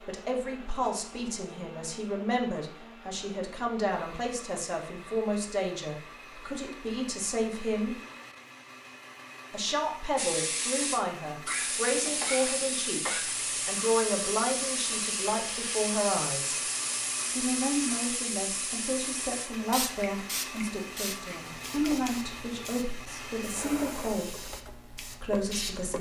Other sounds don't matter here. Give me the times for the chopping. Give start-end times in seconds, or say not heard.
not heard.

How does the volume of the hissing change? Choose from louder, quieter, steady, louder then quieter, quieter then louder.
quieter.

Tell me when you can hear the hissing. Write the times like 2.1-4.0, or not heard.
10.2-25.9.